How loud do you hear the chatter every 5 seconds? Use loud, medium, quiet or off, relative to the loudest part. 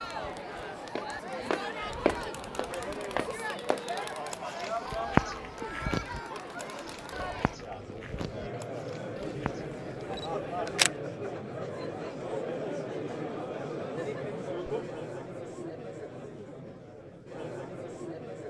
loud, loud, loud, medium.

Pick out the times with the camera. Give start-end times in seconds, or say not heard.
9.2-10.9.